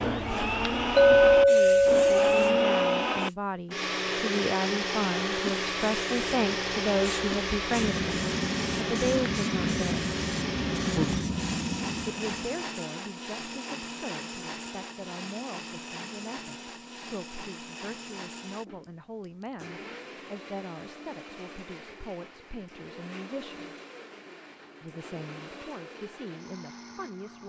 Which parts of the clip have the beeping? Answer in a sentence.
You can't hear the beeping here.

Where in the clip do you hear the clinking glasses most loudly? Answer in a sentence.
The loudest moment of the clinking glasses is at 1 second.